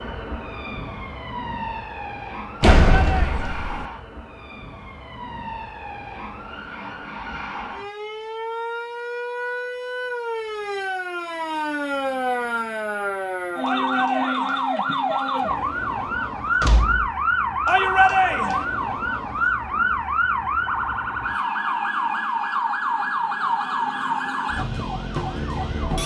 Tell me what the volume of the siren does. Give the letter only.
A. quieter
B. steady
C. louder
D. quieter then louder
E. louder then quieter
C.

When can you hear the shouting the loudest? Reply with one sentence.
The volume of the shouting peaks at 18 seconds.